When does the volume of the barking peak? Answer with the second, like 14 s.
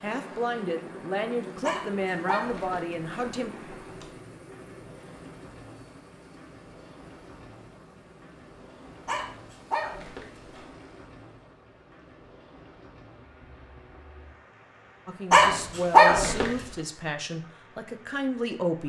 16 s.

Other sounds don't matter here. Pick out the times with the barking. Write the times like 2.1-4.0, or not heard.
1.6-4.1, 9.1-10.7, 15.3-16.5.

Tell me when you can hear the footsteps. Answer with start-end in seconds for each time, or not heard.
not heard.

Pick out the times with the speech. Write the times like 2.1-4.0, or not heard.
0.0-3.5, 15.1-18.8.